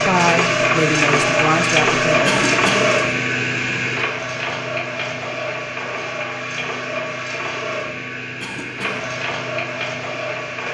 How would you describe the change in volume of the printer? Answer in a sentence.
The loudness of the printer goes down.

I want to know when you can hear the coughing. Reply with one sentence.
The coughing can be heard from 2.2 to 3.0 s and from 8.4 to 9.1 s.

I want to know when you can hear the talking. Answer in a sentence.
The talking can be heard from 0.0 to 2.5 s.